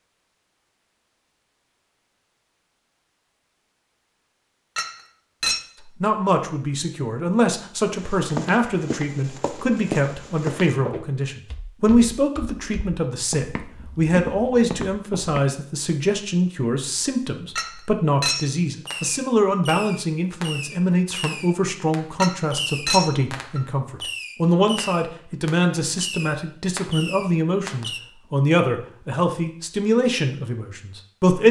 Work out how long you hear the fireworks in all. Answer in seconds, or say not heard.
9 s.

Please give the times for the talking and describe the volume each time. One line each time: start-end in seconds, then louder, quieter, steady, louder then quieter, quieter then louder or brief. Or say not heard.
5.8-31.4 steady.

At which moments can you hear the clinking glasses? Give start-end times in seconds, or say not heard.
4.8-5.6, 17.6-18.5, 22.2-23.6.